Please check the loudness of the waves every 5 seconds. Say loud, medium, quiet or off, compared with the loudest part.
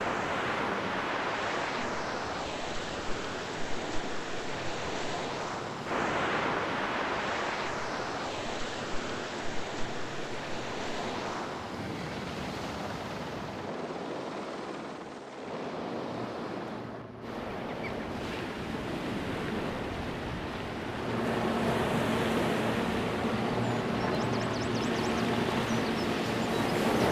loud, loud, medium, medium, loud, loud.